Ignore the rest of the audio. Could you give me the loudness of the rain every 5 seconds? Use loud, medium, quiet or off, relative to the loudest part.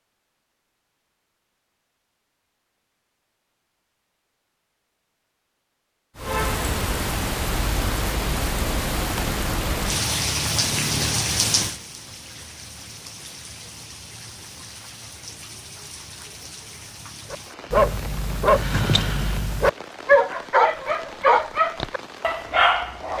off, loud, loud, quiet, quiet.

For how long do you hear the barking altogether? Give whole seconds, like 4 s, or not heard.
6 s.